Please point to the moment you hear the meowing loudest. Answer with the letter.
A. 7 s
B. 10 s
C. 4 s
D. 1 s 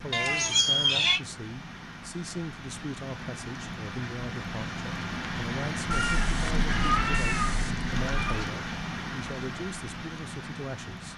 D.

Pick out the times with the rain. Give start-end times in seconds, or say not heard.
0.0-11.1.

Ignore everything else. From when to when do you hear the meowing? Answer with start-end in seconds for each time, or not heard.
0.1-1.2, 5.9-8.5.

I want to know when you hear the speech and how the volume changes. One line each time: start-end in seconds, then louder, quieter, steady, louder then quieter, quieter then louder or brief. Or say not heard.
0.0-11.1 steady.